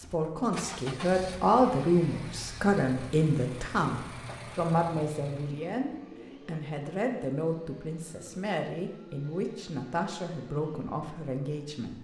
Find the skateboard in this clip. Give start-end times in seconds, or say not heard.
not heard.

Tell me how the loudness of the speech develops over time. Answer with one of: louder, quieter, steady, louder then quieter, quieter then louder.
quieter.